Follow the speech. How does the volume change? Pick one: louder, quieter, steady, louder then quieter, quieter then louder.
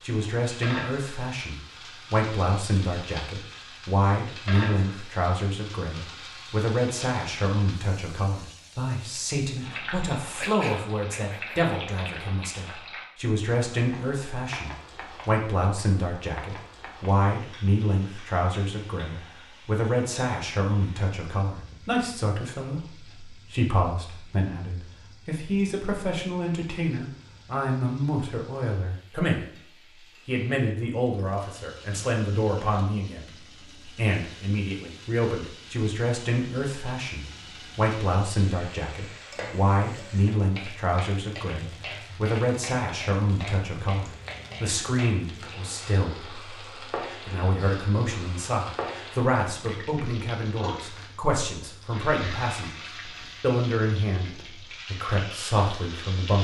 steady.